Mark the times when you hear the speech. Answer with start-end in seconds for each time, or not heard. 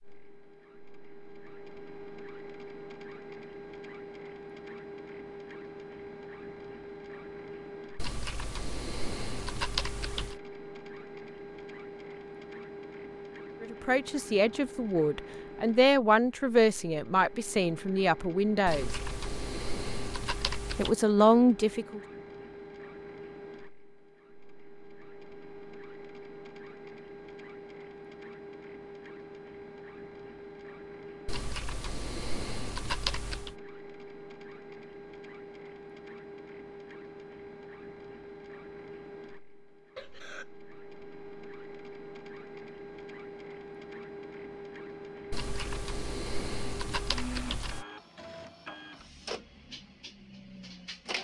13.6-18.9, 20.8-22.0.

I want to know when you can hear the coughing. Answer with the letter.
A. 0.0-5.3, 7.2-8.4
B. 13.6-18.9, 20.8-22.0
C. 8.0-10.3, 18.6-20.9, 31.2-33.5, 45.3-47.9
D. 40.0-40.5
D.